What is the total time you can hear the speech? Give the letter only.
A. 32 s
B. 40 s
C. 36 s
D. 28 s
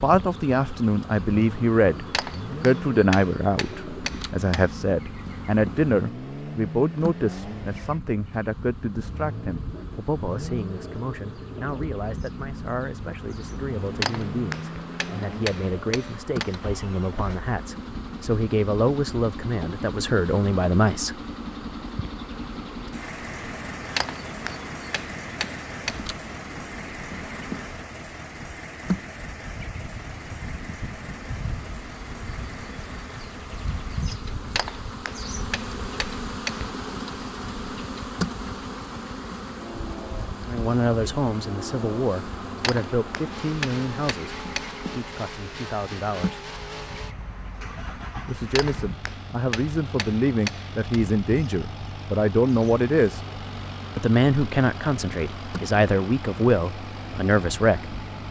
C.